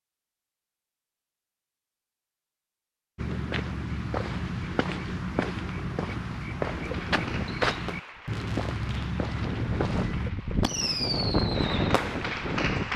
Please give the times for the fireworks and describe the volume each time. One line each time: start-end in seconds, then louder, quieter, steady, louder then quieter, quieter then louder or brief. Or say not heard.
6.6-12.9 quieter then louder.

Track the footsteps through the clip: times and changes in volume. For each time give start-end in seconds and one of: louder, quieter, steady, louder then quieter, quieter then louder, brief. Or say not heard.
3.1-10.3 steady.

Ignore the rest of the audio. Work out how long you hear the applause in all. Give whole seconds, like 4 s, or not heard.
6 s.